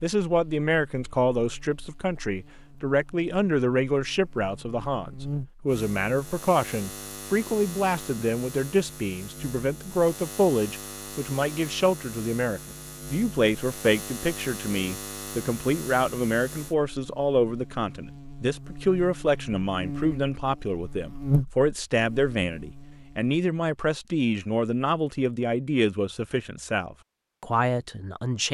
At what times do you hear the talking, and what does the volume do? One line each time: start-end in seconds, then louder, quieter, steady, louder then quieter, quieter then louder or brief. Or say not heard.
0.0-28.4 steady.